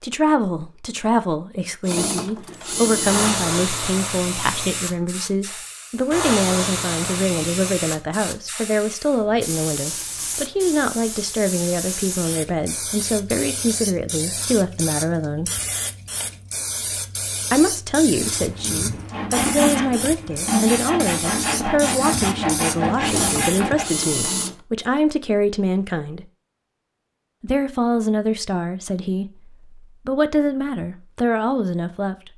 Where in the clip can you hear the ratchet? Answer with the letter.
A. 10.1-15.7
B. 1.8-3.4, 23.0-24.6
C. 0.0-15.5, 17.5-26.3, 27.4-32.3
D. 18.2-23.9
B.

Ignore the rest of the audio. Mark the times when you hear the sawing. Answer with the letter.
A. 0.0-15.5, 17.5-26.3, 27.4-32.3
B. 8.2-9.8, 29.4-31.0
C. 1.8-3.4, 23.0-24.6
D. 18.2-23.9
D.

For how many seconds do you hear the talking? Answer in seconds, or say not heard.
29 s.